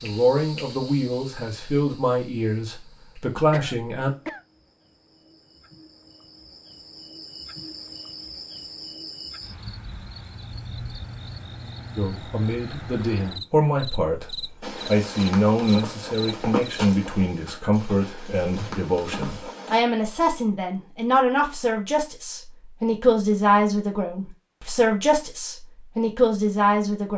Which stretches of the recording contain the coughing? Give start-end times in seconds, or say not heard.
3.5-4.4.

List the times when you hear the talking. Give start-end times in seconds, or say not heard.
0.0-4.1, 11.9-27.1.